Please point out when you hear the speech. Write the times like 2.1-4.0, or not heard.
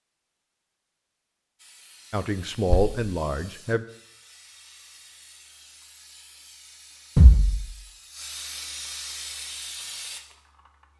2.1-3.9.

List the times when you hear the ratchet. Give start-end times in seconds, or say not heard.
not heard.